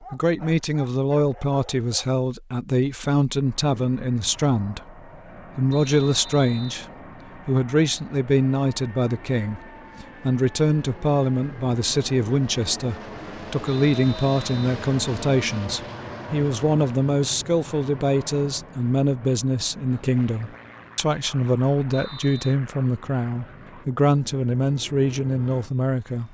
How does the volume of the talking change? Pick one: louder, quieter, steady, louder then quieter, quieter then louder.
steady.